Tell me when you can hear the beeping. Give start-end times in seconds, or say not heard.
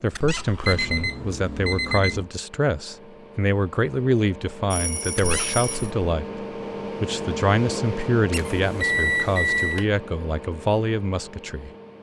0.6-2.3, 4.7-5.9, 8.3-9.8.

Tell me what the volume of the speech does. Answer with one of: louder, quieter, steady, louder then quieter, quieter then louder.
steady.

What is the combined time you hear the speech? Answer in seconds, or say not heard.
11 s.